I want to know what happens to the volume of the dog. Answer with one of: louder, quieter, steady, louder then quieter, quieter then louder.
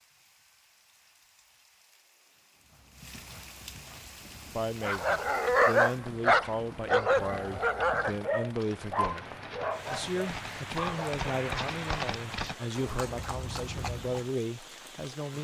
quieter.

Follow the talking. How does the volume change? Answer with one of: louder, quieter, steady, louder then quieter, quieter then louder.
steady.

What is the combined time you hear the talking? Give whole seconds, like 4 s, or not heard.
11 s.